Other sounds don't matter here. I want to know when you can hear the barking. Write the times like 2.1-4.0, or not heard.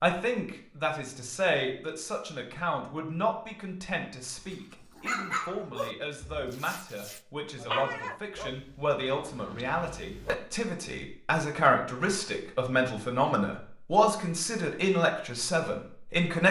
4.5-10.3.